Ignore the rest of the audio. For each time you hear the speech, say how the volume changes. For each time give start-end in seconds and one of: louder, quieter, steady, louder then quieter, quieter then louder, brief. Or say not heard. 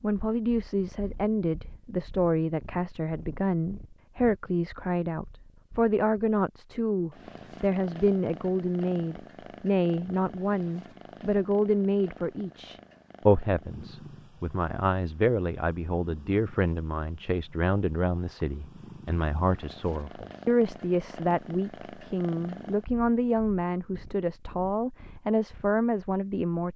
0.0-26.7 steady.